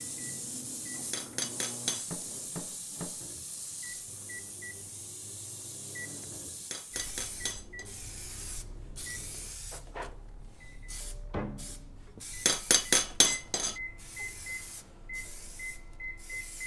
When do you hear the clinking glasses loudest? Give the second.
13 s.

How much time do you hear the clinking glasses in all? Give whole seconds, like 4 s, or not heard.
4 s.